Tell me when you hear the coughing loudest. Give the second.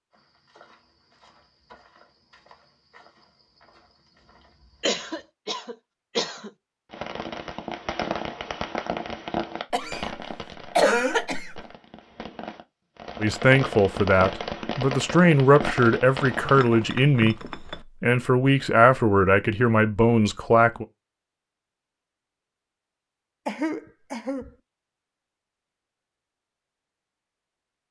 11 s.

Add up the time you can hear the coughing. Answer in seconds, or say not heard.
5 s.